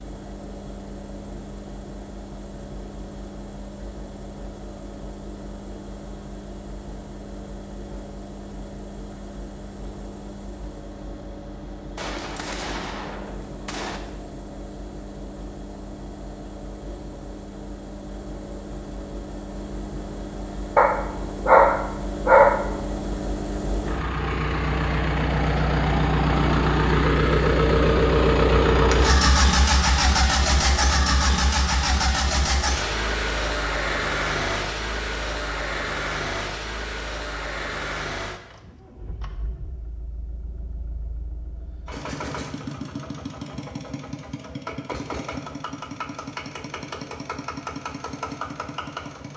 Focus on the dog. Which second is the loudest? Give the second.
22 s.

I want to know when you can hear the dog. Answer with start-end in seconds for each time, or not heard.
20.8-22.6.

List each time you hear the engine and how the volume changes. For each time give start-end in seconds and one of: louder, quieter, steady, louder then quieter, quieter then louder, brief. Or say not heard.
0.0-49.3 louder then quieter.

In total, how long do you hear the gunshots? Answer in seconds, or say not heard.
2 s.